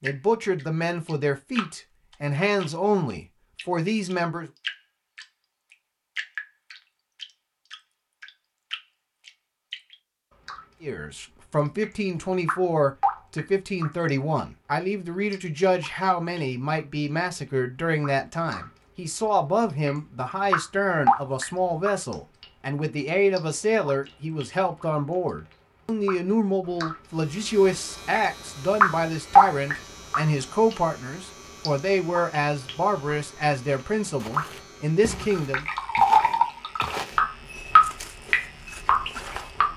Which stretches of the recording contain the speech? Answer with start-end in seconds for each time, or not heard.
0.0-4.5, 10.8-35.6.